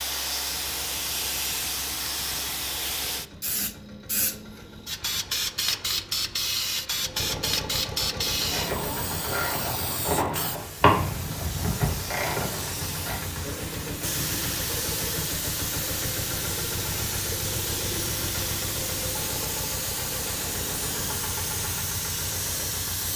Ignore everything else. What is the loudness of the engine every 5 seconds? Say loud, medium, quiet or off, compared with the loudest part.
quiet, loud, loud, loud, loud.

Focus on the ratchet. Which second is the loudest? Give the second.
11 s.